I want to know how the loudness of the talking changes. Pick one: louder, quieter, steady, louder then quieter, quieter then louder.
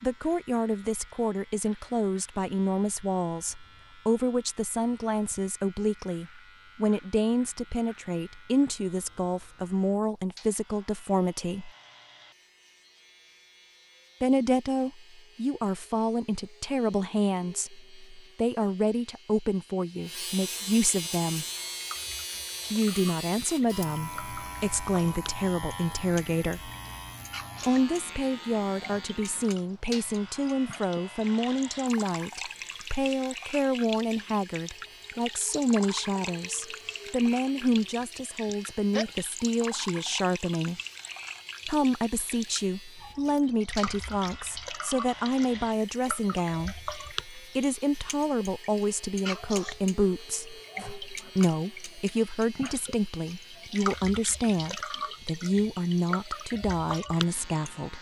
steady.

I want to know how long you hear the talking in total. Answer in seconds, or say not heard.
52 s.